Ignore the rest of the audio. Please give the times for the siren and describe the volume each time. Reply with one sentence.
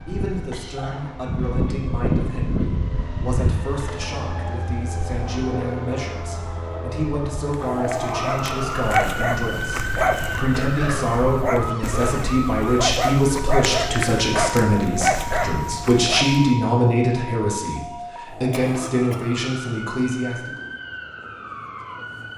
The siren can be heard from 0.0 to 22.3 s, getting quieter.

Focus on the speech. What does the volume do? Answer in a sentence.
The loudness of the speech goes up.